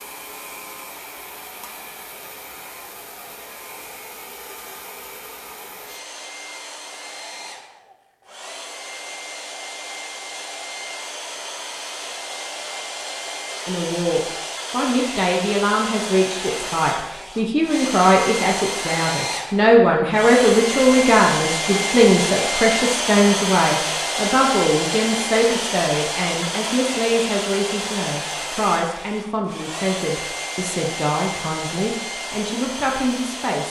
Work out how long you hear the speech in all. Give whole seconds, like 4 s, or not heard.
20 s.